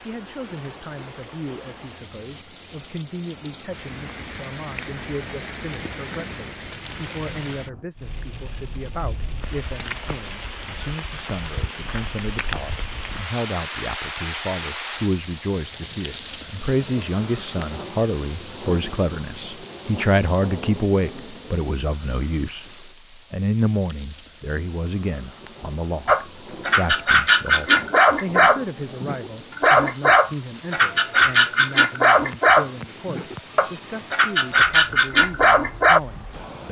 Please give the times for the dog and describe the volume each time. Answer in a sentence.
The dog can be heard from 26.1 to 36.0 s, at a steady volume.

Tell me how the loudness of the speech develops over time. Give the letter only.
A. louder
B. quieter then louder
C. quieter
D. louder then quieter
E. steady
D.